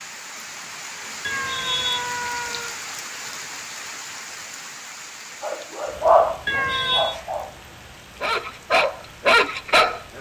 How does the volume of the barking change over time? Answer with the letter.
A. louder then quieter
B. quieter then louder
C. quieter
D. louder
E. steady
B.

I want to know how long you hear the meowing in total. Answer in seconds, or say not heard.
2 s.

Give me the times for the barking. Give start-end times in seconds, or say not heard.
5.4-10.1.